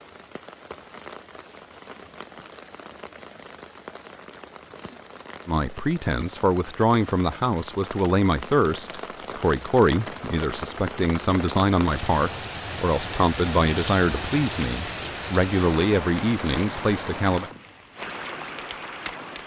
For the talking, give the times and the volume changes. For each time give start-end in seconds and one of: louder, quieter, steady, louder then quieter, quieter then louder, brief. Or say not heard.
5.5-17.5 steady.